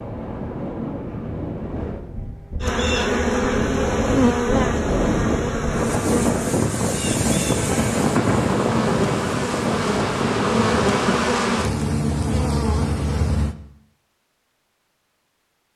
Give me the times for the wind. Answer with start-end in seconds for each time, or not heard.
0.0-11.3.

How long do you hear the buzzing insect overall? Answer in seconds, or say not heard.
11 s.